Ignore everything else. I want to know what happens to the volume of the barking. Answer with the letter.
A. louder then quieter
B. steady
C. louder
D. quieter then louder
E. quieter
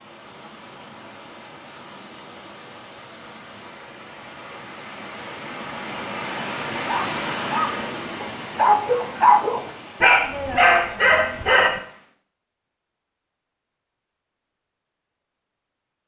C.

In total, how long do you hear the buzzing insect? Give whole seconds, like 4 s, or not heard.
not heard.